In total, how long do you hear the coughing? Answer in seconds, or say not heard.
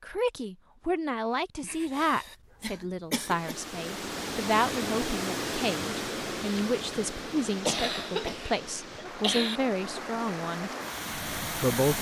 4 s.